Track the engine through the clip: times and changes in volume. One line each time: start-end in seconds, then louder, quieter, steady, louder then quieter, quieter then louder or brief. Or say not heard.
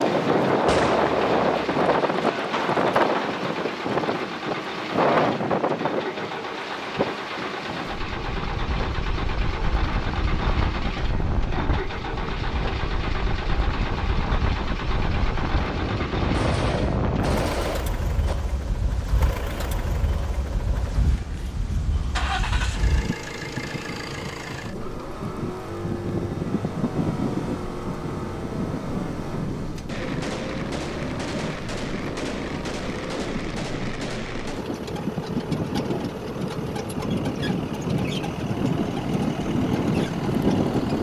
0.0-40.9 steady.